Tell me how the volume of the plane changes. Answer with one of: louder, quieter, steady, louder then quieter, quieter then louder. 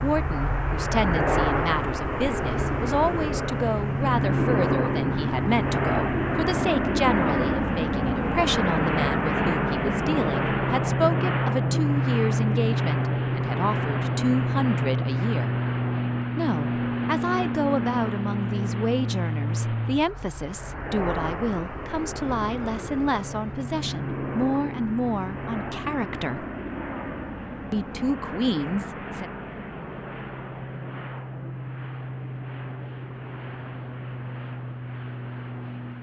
quieter.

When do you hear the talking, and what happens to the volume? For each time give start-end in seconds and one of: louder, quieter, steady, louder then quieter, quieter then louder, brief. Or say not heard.
0.0-15.6 steady
16.4-26.4 steady
27.7-29.3 brief.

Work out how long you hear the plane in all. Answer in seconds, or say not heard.
36 s.